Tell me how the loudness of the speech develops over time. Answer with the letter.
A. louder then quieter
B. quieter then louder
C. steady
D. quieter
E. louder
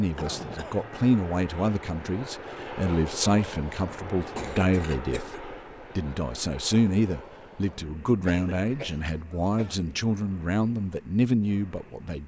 C.